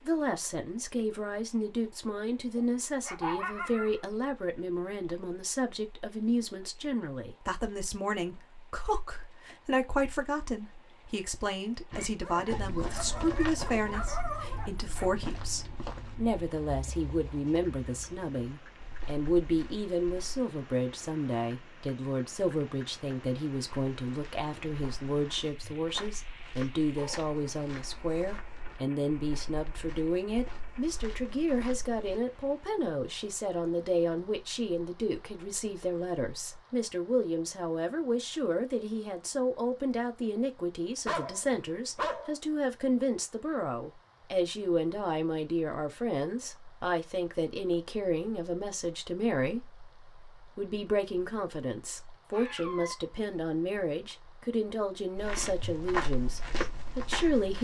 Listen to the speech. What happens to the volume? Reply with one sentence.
The volume of the speech stays about the same.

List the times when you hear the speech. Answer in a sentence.
The speech can be heard from 0.1 to 57.5 s.